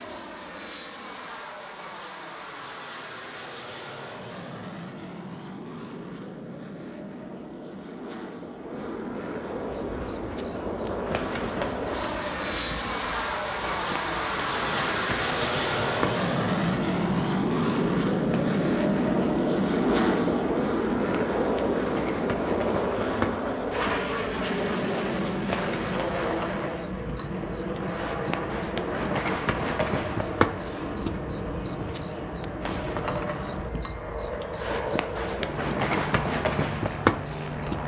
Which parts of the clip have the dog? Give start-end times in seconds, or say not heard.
not heard.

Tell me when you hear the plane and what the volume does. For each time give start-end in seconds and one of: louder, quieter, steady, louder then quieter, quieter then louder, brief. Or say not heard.
0.0-37.8 louder then quieter.